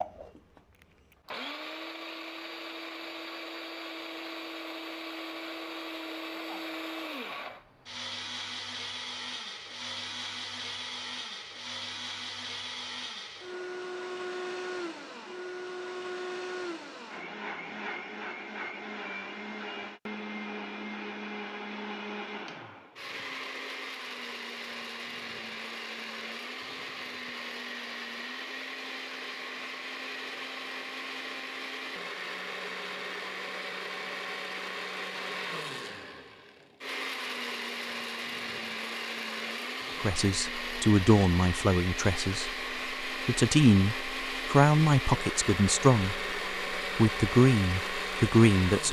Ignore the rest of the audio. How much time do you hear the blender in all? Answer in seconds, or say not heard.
49 s.